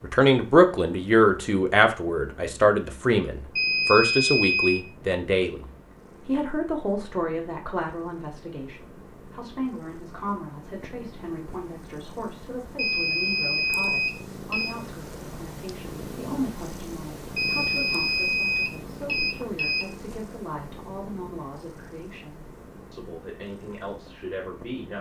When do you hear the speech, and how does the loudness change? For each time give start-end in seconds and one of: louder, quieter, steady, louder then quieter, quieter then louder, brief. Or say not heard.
0.0-24.9 quieter.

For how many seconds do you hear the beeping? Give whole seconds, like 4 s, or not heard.
6 s.